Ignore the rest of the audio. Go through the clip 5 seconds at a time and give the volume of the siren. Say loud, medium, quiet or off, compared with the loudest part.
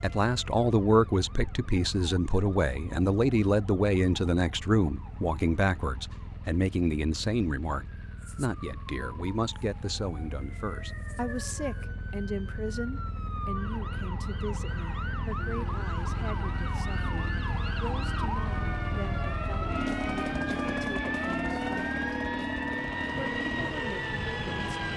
quiet, quiet, medium, loud, loud.